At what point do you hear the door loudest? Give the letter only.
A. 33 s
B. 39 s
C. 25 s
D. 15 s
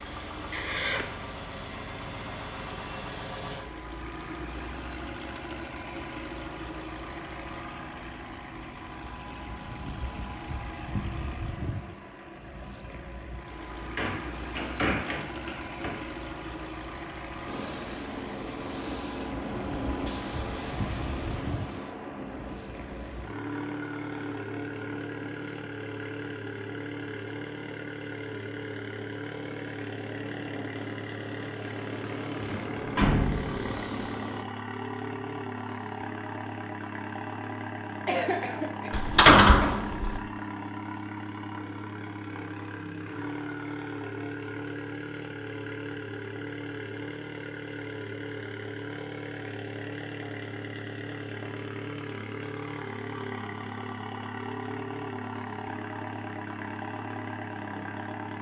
B.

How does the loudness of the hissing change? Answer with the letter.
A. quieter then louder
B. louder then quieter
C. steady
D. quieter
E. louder
A.